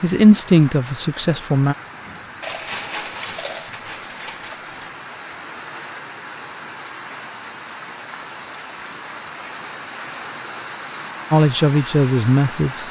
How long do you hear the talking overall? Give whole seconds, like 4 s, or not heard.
3 s.